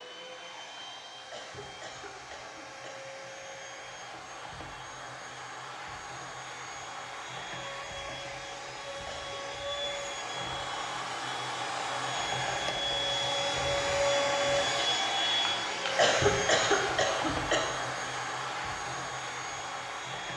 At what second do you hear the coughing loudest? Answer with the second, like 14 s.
16 s.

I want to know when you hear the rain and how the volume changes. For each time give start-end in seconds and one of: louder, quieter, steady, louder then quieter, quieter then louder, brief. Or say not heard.
not heard.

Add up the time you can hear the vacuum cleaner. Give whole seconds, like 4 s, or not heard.
20 s.